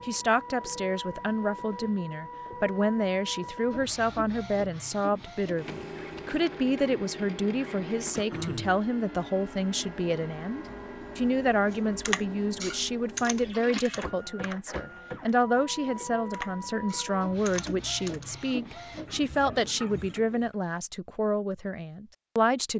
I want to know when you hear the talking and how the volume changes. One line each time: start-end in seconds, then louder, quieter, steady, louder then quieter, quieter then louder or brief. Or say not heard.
0.1-22.7 steady.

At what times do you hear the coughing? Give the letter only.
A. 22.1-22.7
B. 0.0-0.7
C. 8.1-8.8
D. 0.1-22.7
C.